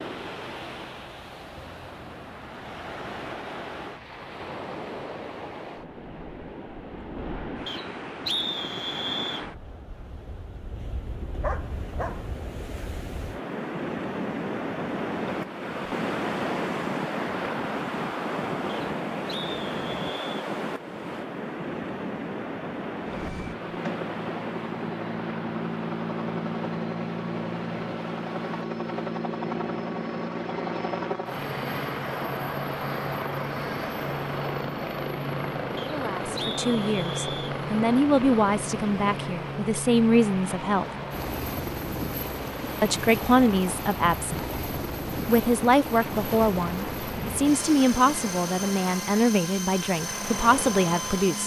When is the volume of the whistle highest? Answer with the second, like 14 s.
8 s.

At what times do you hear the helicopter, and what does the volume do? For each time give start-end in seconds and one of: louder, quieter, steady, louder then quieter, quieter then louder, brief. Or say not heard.
23.1-51.4 steady.